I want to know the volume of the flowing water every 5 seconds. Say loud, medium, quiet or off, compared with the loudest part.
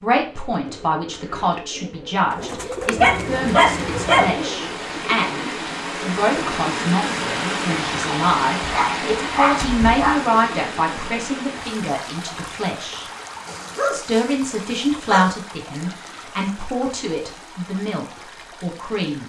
medium, loud, medium, quiet.